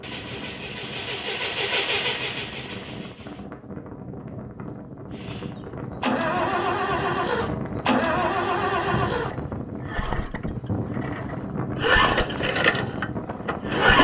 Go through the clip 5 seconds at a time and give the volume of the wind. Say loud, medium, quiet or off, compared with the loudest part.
medium, loud, loud.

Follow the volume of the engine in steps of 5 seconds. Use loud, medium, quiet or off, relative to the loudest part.
medium, loud, loud.